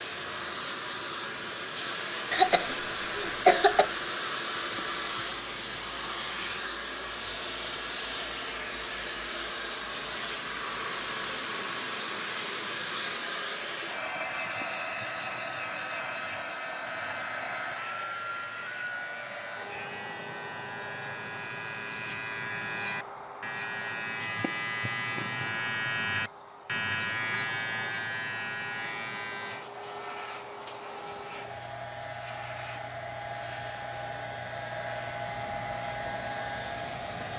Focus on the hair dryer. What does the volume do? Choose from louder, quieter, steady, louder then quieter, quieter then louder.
quieter then louder.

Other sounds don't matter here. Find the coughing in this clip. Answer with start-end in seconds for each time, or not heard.
2.3-3.9.